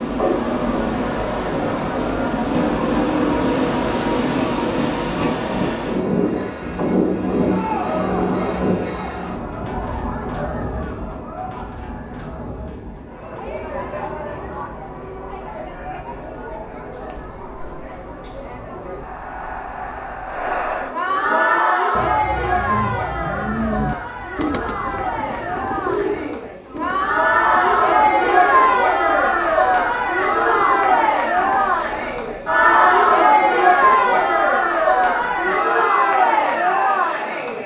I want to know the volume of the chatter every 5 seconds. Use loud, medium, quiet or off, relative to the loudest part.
quiet, quiet, quiet, quiet, medium, loud, loud, loud.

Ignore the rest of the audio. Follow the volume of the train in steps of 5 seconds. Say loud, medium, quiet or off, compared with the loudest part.
loud, loud, quiet, quiet, quiet, quiet, quiet, quiet.